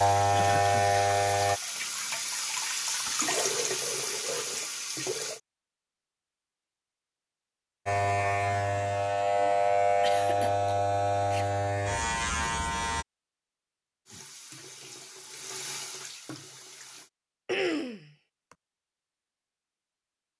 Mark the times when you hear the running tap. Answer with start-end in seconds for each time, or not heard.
0.0-5.4, 14.1-17.1.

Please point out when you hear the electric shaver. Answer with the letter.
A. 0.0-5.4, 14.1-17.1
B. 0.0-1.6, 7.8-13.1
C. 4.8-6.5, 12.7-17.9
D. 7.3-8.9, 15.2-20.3
B.